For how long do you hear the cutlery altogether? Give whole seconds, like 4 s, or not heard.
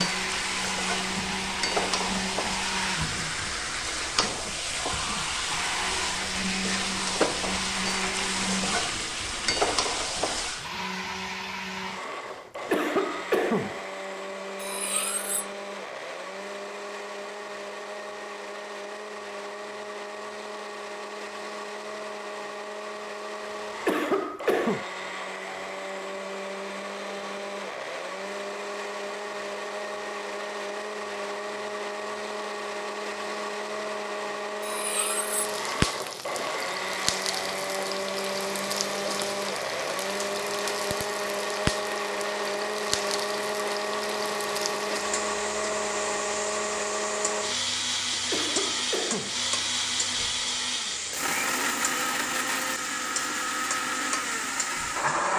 2 s.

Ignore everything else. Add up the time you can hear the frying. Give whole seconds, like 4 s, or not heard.
31 s.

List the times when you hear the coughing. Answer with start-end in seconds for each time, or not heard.
12.7-13.8, 23.9-24.9, 48.3-49.4.